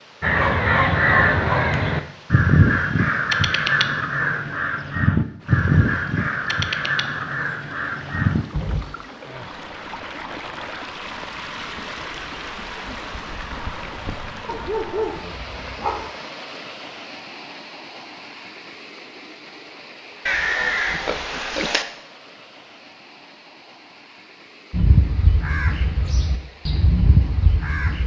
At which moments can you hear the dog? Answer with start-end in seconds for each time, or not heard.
0.3-1.9, 14.4-16.1.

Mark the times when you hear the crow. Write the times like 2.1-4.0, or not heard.
0.2-8.8, 20.2-21.9, 24.7-28.0.